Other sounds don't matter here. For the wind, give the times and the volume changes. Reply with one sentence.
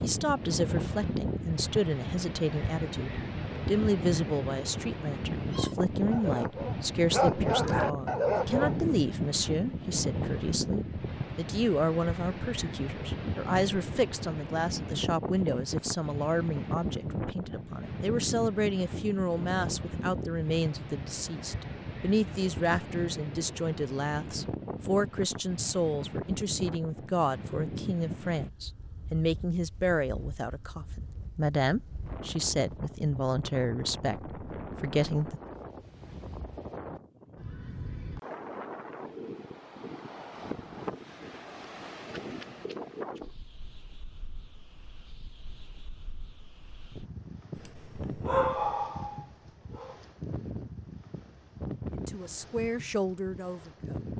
The wind can be heard from 0.0 to 54.1 s, getting quieter.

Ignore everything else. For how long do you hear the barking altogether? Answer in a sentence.
The barking can be heard for 6 seconds in total.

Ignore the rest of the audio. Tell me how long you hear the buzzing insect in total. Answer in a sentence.
You can't hear the buzzing insect here.